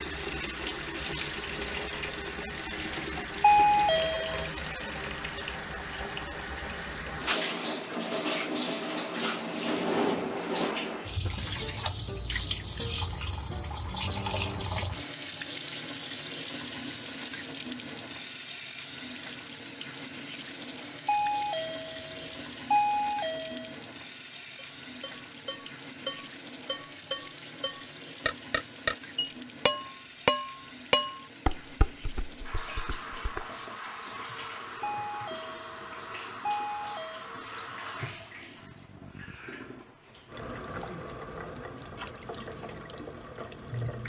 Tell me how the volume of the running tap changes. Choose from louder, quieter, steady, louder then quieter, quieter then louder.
quieter.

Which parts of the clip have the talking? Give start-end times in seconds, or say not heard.
not heard.